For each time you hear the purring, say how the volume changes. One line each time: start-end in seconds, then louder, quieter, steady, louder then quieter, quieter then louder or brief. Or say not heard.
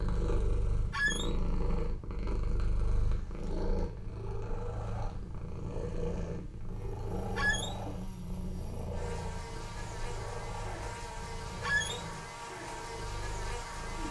0.0-14.0 quieter.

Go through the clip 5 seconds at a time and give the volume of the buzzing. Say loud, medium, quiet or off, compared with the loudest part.
off, loud, loud.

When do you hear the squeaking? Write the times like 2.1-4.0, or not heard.
0.9-1.4, 7.3-7.8, 11.6-12.1.